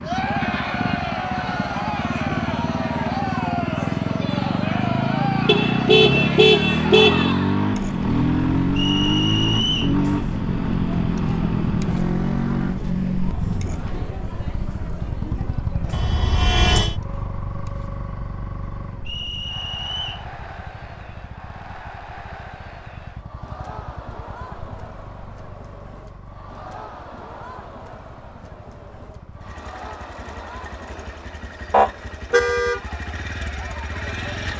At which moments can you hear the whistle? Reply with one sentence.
The whistle can be heard from 8.8 to 9.9 s and from 19.1 to 20.2 s.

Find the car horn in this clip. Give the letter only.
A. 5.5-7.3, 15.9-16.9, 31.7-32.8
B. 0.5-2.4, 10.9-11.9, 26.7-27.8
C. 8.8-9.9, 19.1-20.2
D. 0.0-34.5
A.